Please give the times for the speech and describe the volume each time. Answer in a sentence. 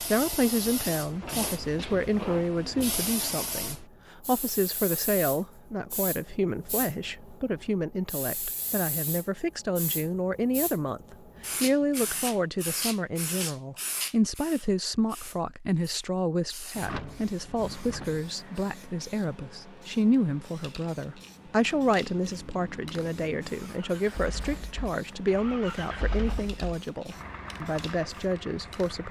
The speech can be heard from 0.0 to 29.0 s, at a steady volume.